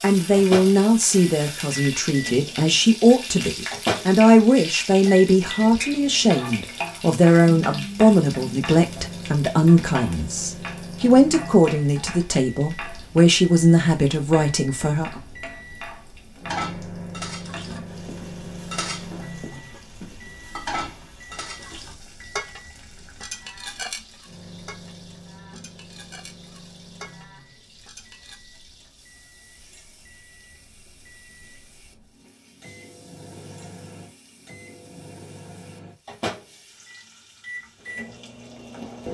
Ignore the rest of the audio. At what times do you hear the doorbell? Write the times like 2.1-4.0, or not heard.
not heard.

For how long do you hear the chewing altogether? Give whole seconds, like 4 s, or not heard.
not heard.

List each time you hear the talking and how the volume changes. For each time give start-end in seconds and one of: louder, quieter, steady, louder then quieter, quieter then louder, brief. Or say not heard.
0.0-15.2 steady.